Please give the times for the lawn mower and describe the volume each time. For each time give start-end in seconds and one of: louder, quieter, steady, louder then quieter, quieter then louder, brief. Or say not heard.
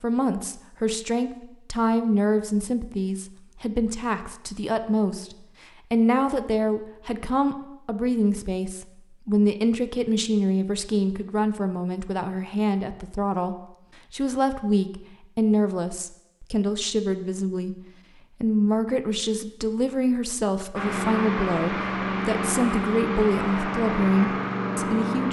20.8-25.2 steady.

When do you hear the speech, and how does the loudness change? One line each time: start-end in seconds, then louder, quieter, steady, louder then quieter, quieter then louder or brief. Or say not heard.
0.0-17.8 steady
18.4-25.2 steady.